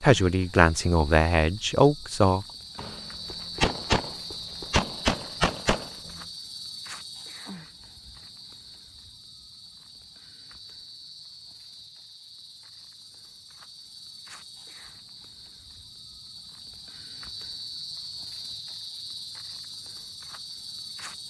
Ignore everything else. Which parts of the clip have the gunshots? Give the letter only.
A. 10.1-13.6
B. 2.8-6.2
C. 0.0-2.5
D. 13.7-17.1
B.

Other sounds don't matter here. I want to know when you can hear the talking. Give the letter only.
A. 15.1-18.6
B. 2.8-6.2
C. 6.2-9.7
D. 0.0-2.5
D.